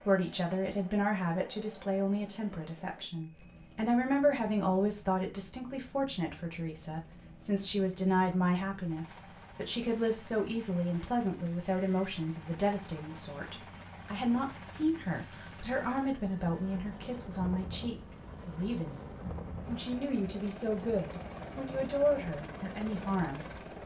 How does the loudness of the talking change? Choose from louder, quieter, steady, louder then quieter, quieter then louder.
steady.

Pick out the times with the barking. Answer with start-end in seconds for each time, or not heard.
not heard.